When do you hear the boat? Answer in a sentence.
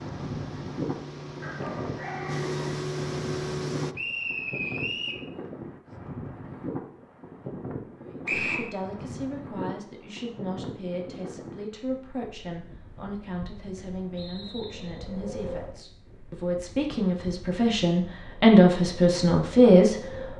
You can hear the boat from 0.0 to 4.0 s.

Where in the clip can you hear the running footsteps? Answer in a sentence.
You can't hear the running footsteps here.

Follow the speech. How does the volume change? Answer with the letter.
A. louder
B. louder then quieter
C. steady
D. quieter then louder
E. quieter
A.